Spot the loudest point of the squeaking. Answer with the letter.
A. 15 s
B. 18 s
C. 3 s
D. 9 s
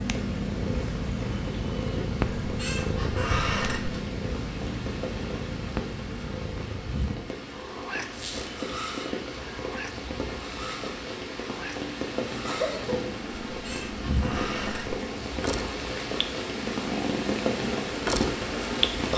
C.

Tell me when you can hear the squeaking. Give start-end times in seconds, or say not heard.
2.5-4.0, 8.1-8.5, 13.5-15.0.